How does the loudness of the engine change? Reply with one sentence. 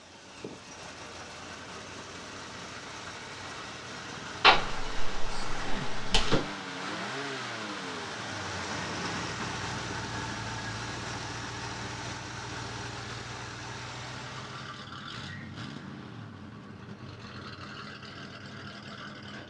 The loudness of the engine goes up, then down.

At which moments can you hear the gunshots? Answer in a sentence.
The gunshots can be heard from 4.4 to 6.4 s.